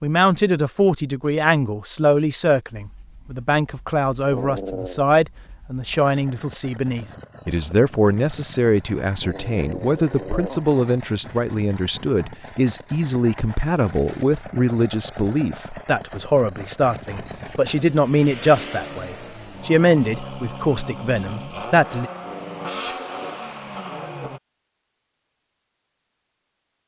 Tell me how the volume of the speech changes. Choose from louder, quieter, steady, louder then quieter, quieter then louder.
steady.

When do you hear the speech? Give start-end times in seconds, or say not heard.
0.0-22.1.